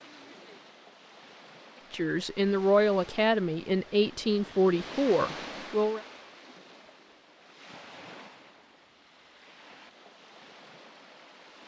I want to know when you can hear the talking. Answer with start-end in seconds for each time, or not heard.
1.9-6.0.